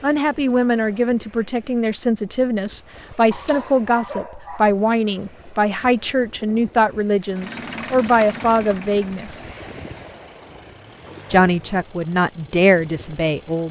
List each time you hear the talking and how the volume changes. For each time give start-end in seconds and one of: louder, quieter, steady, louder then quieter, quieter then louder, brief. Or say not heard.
0.0-9.4 steady
11.3-13.6 brief.